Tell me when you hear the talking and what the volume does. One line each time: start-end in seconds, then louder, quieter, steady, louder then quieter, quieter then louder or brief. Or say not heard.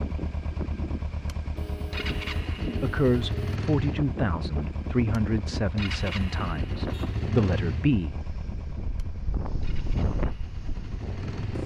2.8-8.2 quieter then louder.